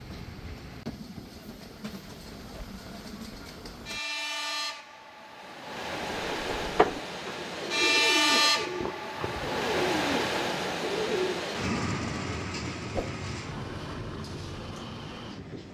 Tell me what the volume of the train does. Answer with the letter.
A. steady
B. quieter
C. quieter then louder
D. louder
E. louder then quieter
E.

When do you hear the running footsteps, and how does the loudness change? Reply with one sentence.
You can't hear the running footsteps here.